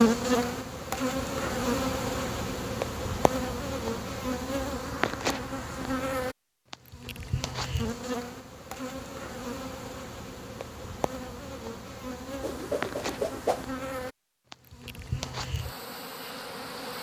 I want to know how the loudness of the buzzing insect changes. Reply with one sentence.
The loudness of the buzzing insect goes down.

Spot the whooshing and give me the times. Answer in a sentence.
The whooshing can be heard from 12.4 to 13.7 s.